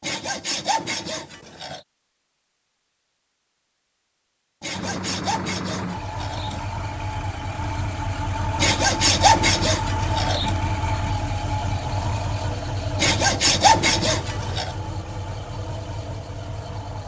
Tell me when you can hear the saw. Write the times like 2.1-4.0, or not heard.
0.0-1.8, 4.6-6.7, 8.6-10.6, 12.9-14.7.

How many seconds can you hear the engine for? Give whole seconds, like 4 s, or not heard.
12 s.